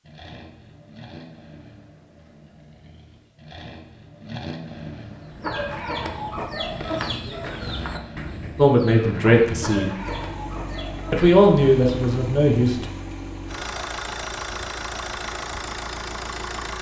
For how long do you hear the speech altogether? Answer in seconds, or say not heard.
3 s.